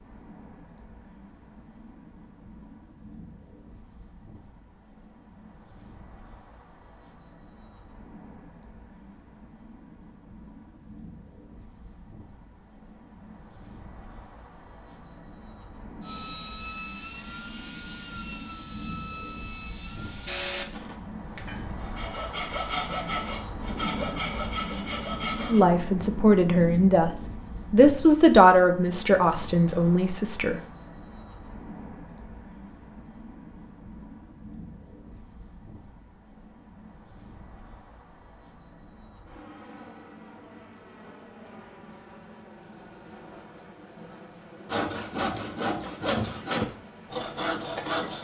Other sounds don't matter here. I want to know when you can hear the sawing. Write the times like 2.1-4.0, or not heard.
16.0-25.6, 44.6-48.1.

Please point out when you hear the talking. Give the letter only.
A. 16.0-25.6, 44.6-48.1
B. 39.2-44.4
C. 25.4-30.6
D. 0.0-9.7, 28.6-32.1
C.